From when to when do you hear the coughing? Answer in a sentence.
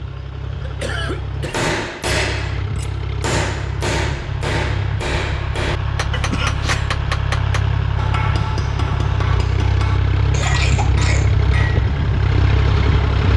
The coughing can be heard from 0.6 to 1.7 s, from 6.1 to 6.9 s and from 10.3 to 11.3 s.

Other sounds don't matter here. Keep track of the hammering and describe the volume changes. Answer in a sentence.
The loudness of the hammering goes down.